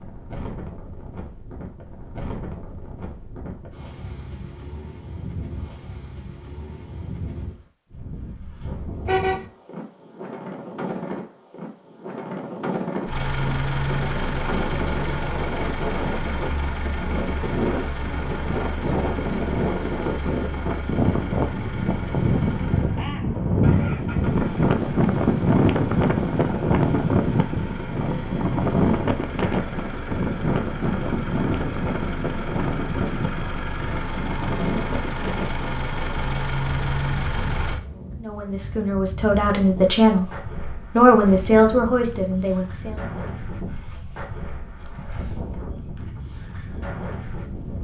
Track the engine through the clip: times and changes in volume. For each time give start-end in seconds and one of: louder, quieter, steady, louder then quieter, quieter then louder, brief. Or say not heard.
13.1-37.8 quieter then louder.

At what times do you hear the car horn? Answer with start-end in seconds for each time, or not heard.
9.1-9.5.